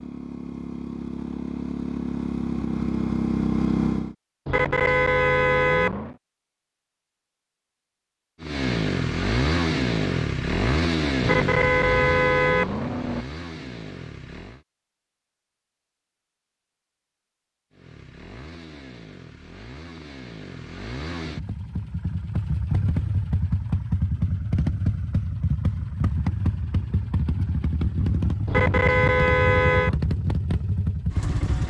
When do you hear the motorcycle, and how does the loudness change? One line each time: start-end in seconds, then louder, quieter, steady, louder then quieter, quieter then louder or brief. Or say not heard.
0.0-4.2 louder
8.4-14.7 quieter
17.7-31.6 louder.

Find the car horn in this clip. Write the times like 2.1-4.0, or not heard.
4.5-6.2, 11.2-13.2, 28.4-29.9.